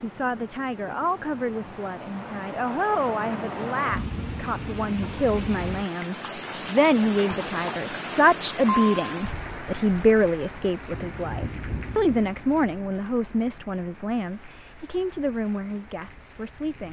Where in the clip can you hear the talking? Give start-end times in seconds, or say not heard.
0.0-16.8.